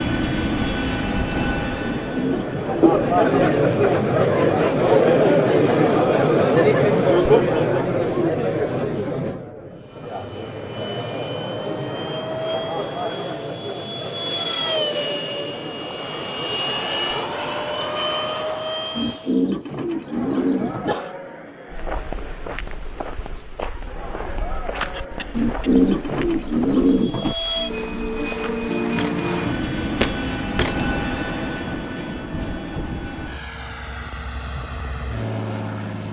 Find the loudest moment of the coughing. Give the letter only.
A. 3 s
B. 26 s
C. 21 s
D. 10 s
A.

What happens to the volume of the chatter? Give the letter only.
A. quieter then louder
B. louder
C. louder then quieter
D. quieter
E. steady
D.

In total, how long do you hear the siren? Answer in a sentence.
The siren can't be heard in this clip.